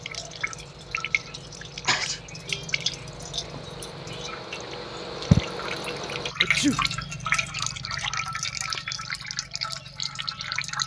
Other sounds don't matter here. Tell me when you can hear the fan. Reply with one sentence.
The fan can be heard from 0.0 to 6.3 s.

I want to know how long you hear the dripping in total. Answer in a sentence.
The dripping can be heard for 11 seconds in total.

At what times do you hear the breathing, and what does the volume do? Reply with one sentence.
The breathing can't be heard in this clip.